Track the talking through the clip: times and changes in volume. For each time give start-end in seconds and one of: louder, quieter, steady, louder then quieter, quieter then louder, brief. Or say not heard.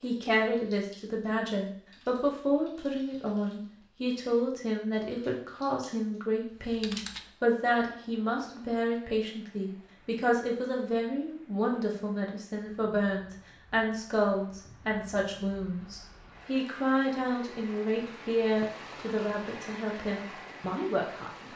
0.0-21.5 steady.